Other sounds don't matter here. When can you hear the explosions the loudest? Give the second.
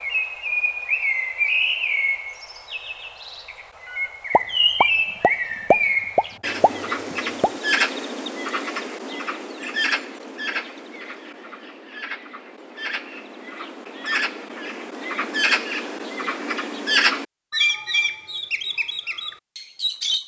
6 s.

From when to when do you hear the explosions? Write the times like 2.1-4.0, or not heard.
4.3-7.5.